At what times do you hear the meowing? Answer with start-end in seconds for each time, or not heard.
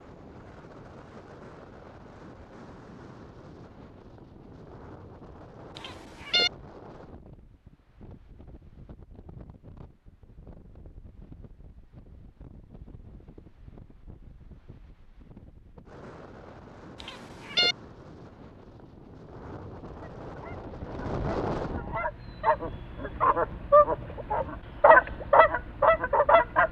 5.8-6.5, 17.0-17.8.